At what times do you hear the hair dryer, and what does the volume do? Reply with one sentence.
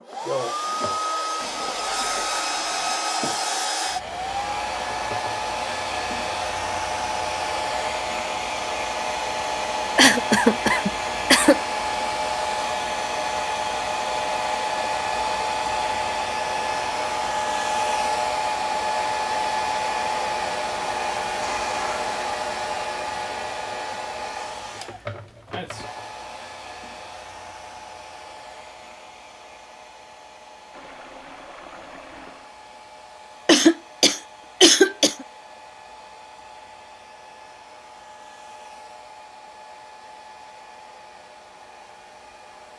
The hair dryer can be heard from 0.0 to 42.7 s, getting quieter.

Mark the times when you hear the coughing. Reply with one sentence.
You can hear the coughing from 9.9 to 11.6 s and from 33.5 to 35.2 s.